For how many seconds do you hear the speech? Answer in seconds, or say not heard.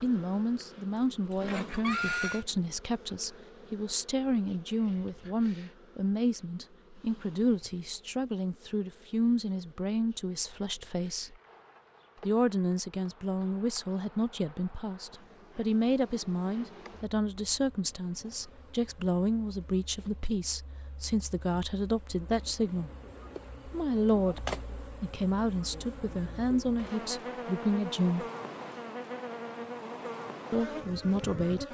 28 s.